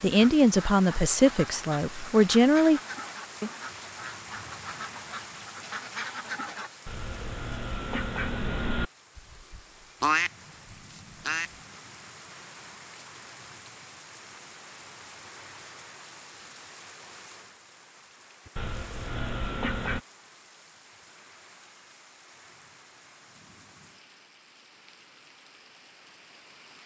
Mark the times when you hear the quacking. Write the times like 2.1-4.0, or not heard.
0.1-11.6, 18.4-20.0.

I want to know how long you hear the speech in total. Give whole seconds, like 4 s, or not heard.
3 s.